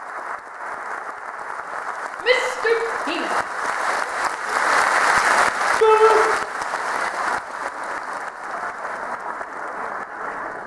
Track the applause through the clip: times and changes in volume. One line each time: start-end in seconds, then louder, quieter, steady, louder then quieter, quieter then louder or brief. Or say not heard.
0.0-10.6 louder then quieter.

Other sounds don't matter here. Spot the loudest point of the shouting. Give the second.
6 s.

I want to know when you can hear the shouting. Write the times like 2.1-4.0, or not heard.
2.2-3.3, 5.8-6.2.